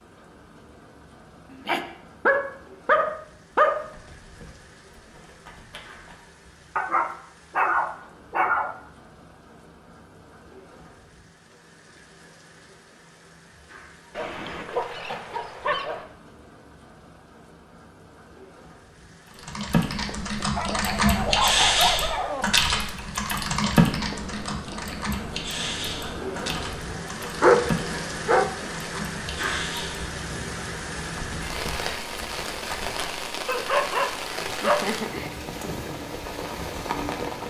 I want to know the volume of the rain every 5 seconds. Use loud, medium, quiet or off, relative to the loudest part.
quiet, quiet, quiet, quiet, medium, loud, loud, loud.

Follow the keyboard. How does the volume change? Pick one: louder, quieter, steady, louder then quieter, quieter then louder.
quieter.